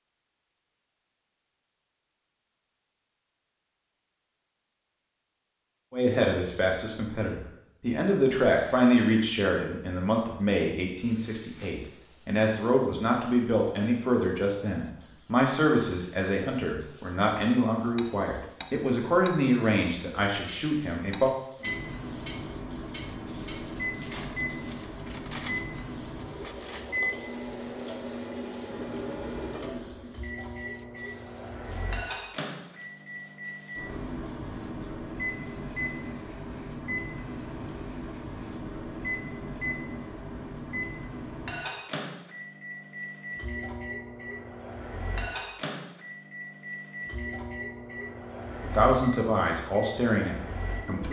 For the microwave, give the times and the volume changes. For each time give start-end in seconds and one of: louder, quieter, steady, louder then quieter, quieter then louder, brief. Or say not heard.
21.6-51.0 steady.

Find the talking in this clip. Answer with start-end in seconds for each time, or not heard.
5.9-21.3, 48.6-51.0.